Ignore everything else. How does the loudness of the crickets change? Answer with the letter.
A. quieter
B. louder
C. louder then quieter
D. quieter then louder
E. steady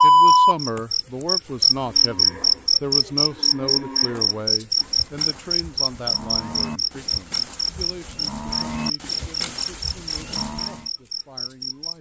A.